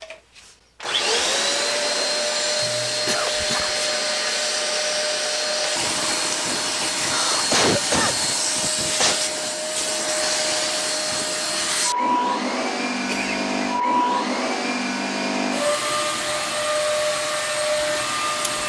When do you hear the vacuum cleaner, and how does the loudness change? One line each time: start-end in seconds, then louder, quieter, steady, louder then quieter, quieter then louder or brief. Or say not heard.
0.0-18.6 steady.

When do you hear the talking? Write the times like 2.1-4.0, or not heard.
not heard.